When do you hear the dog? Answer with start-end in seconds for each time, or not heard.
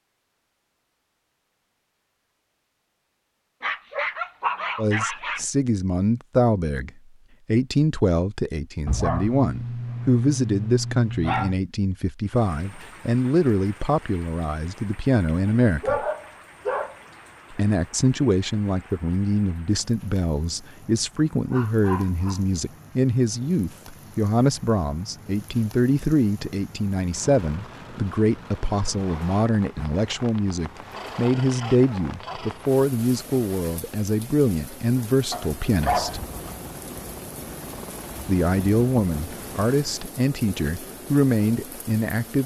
3.6-5.5, 8.8-11.6, 15.4-16.9, 21.5-22.6, 30.9-32.6, 35.3-36.6.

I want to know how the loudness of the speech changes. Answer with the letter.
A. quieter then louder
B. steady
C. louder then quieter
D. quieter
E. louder
B.